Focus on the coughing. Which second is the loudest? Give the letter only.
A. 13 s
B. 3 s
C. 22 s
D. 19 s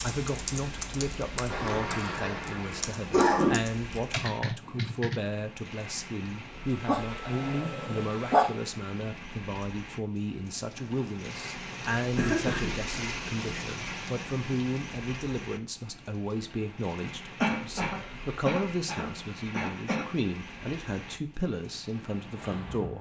B.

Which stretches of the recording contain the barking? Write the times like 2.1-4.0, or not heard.
6.8-8.5.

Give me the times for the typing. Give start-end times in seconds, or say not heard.
0.0-5.2.